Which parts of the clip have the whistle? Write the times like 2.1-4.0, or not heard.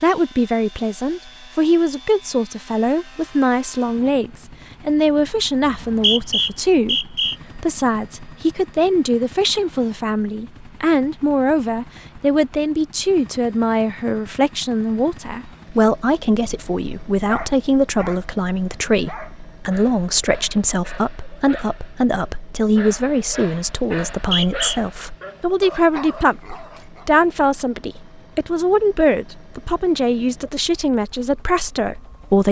5.6-7.3, 23.9-24.8.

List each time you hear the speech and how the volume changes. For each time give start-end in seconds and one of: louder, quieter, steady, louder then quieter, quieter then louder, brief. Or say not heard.
0.0-32.4 steady.